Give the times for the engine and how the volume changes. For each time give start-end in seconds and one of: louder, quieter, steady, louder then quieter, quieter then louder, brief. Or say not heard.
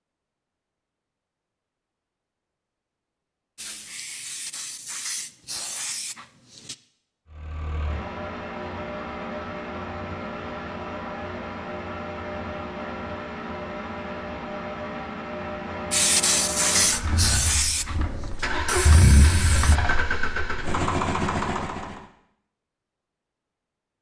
7.3-22.1 louder.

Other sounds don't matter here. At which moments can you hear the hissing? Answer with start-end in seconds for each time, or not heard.
3.5-6.8, 15.9-19.8.